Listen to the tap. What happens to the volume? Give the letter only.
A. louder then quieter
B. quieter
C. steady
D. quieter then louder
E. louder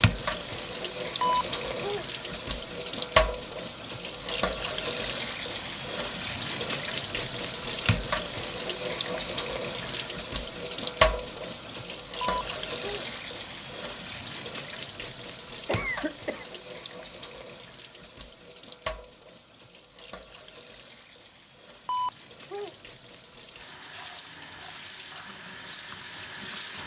B.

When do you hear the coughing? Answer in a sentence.
The coughing can be heard from 15.7 to 16.5 s.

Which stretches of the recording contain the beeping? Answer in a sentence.
The beeping can be heard from 1.2 to 2.0 s, from 12.2 to 13.1 s and from 21.9 to 22.8 s.